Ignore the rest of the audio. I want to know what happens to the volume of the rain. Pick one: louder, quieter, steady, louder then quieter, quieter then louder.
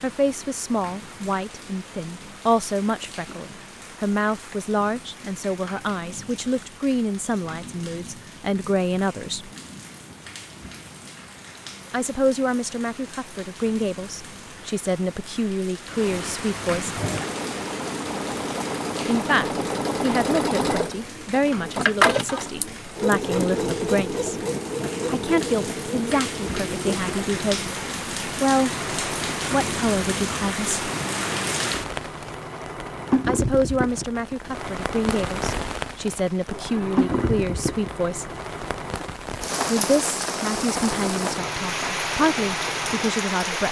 louder.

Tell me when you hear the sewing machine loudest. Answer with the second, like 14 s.
22 s.